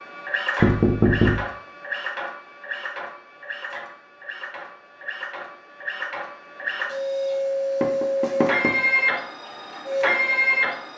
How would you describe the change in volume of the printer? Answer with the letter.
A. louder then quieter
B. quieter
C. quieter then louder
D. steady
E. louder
C.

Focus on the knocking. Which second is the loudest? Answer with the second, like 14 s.
1 s.